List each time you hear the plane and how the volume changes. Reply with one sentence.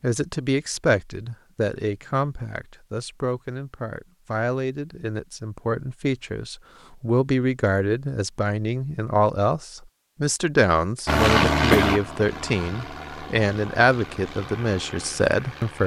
You can hear the plane from 11.1 to 15.8 s, getting quieter.